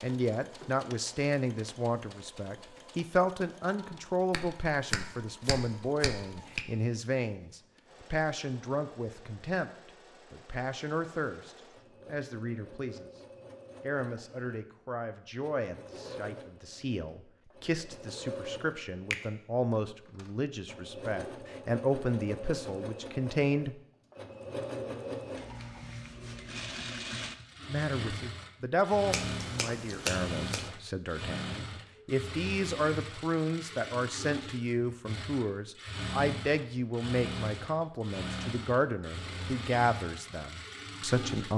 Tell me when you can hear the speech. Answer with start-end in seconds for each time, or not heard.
0.0-13.2, 13.8-23.8, 27.6-41.5.